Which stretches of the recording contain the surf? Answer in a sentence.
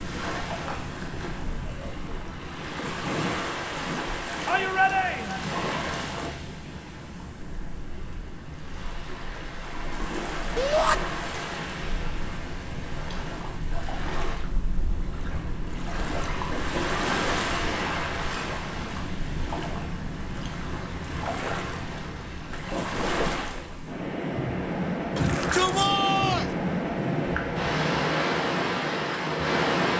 You can hear the surf from 0.0 to 29.9 s.